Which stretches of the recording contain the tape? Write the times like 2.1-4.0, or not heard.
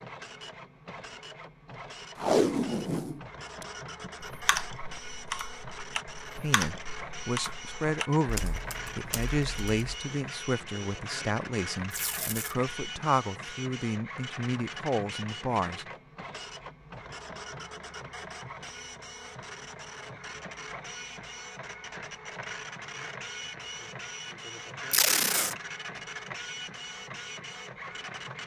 2.1-4.1, 11.9-12.6, 24.9-25.6.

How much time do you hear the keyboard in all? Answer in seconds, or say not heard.
6 s.